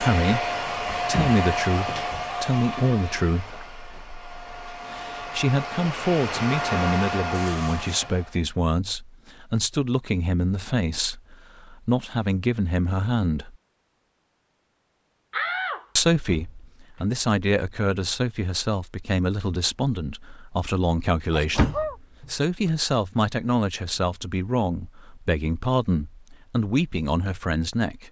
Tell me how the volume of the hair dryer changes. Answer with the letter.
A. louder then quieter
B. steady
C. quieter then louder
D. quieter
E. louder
C.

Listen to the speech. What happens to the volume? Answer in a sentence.
The volume of the speech stays about the same.